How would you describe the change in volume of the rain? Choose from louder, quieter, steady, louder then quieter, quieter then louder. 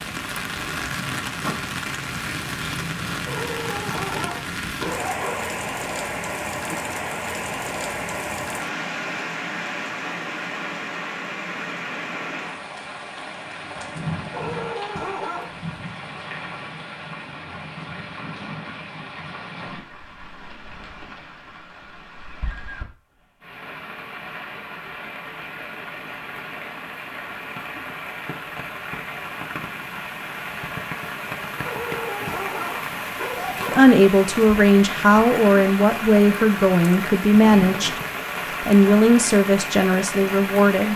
quieter then louder.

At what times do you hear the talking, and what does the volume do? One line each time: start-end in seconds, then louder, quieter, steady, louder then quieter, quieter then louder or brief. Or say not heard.
33.7-38.0 steady
38.6-40.9 brief.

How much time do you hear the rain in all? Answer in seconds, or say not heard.
41 s.